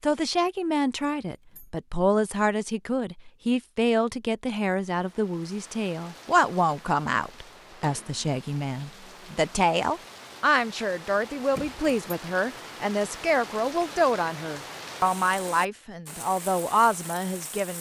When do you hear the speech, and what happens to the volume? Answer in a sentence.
You can hear the speech from 0.0 to 17.7 s, at a steady volume.